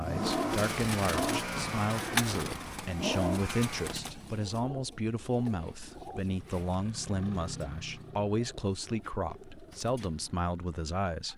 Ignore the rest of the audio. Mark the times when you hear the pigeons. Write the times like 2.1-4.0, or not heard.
0.2-10.4.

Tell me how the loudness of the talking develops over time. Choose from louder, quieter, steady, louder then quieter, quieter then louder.
steady.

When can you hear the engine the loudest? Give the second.
1 s.